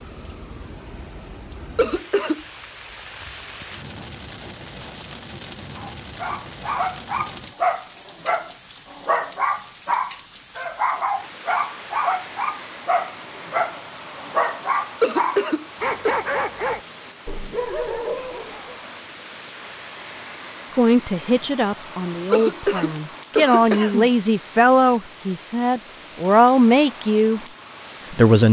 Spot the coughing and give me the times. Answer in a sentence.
The coughing can be heard from 1.8 to 2.4 s, from 15.0 to 16.1 s and from 22.3 to 24.1 s.